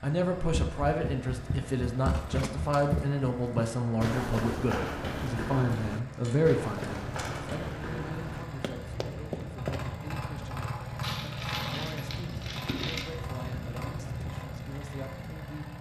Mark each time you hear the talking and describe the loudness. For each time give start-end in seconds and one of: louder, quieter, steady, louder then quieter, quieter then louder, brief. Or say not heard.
0.0-15.7 quieter.